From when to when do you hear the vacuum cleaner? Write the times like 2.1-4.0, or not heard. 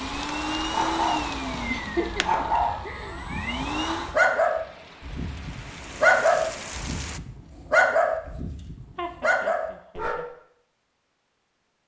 0.0-4.2.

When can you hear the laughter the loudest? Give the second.
2 s.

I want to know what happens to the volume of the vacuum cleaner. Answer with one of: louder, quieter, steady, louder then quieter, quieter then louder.
quieter then louder.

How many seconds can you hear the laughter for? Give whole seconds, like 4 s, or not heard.
3 s.